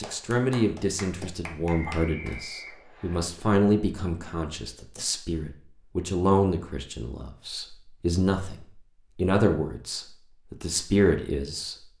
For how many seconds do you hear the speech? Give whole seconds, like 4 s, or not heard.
12 s.